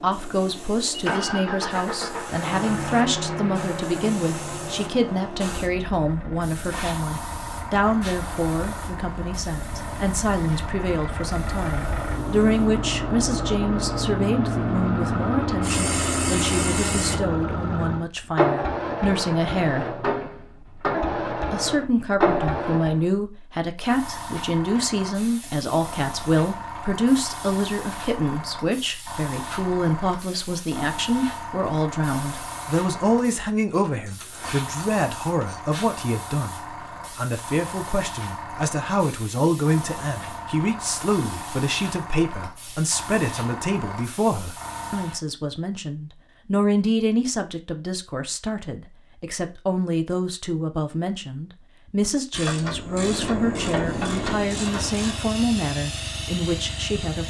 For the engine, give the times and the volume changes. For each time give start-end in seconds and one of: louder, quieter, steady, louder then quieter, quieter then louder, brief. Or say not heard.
0.0-23.2 quieter then louder
52.7-57.2 quieter.